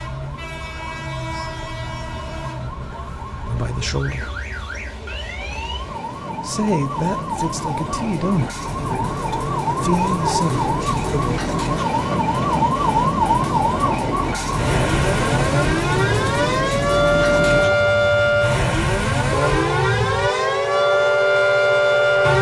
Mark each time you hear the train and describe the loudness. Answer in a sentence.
You can hear the train from 0.0 to 22.3 s, getting louder.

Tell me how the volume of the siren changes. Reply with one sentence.
The loudness of the siren goes up.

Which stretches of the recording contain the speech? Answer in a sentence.
You can hear the speech from 3.5 to 4.3 s and from 6.4 to 11.4 s.